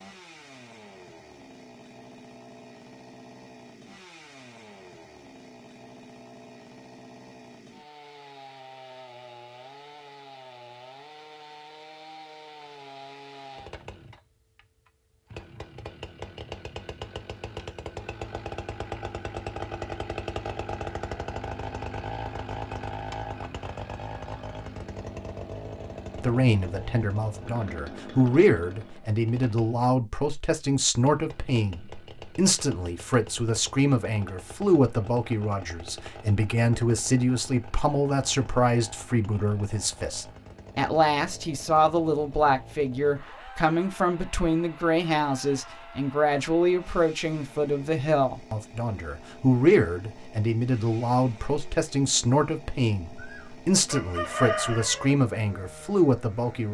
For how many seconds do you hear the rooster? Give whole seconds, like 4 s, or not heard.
2 s.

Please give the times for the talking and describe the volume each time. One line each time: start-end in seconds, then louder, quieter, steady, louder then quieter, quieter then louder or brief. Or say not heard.
26.2-56.7 steady.